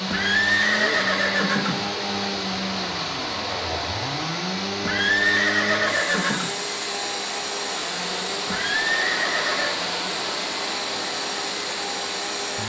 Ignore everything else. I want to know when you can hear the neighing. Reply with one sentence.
The neighing can be heard from 0.1 to 1.8 s, from 4.8 to 6.5 s and from 8.4 to 9.8 s.